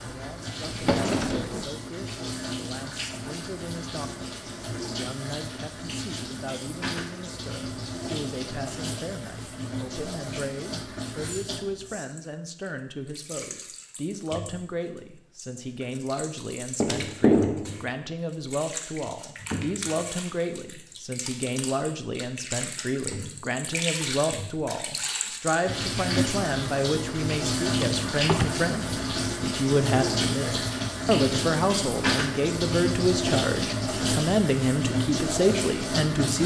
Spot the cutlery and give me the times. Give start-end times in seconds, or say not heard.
not heard.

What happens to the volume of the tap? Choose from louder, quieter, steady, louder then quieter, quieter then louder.
louder.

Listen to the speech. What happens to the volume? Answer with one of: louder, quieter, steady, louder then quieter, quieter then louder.
louder.